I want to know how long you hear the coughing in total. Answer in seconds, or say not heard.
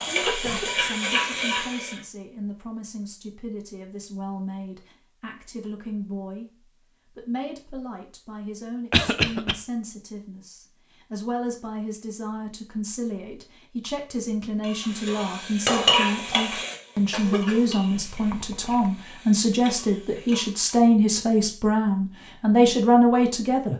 3 s.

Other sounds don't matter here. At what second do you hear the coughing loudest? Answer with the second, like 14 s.
9 s.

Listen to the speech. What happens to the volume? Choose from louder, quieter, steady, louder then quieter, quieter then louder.
louder.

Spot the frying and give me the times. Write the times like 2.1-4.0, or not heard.
0.0-2.0, 14.6-20.7.